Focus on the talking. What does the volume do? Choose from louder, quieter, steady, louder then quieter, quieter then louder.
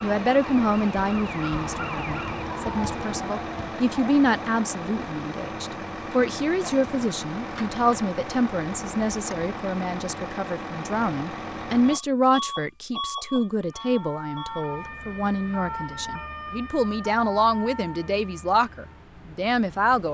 steady.